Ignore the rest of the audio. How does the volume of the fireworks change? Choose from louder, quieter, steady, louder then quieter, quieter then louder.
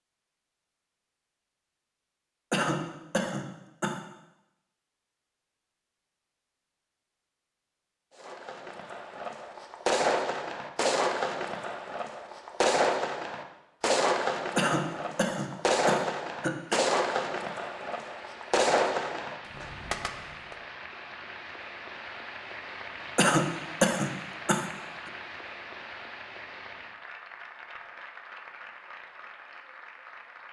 steady.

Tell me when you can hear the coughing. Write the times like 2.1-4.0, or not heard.
2.5-4.0, 14.6-16.8, 23.1-24.6.